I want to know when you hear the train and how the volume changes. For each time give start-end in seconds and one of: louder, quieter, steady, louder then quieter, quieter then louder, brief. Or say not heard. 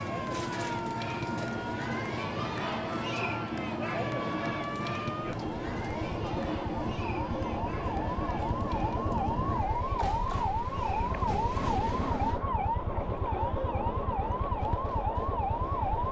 0.0-16.0 quieter.